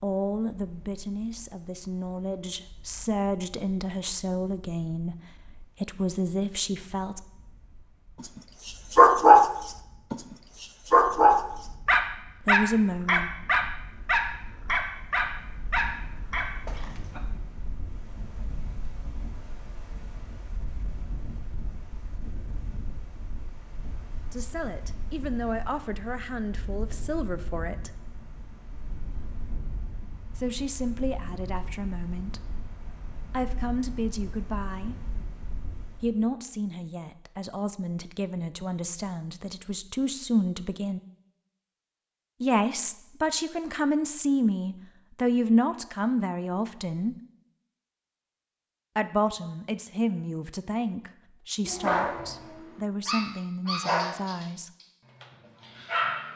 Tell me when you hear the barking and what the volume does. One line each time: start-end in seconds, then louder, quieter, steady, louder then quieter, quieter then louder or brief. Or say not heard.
8.7-9.5 brief
10.1-17.2 quieter
51.6-56.3 louder then quieter.